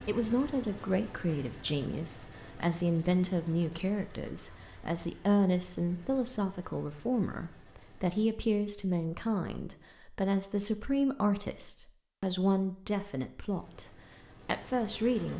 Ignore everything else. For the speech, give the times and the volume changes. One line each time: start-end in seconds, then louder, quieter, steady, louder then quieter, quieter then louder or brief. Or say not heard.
0.1-15.3 steady.